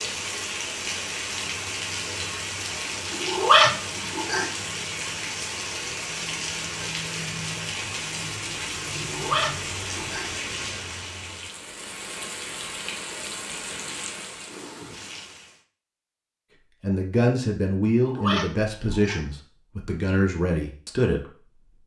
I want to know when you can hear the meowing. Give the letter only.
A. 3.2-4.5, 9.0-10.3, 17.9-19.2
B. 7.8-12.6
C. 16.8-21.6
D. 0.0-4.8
A.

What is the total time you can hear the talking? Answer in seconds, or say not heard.
5 s.